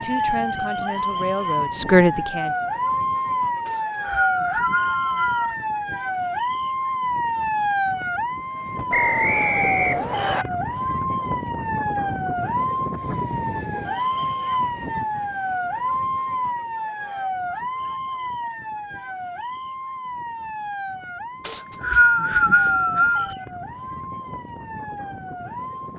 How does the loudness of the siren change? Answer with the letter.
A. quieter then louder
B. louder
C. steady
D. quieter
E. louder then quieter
D.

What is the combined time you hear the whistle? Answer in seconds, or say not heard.
5 s.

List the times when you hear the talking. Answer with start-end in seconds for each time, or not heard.
0.0-2.5.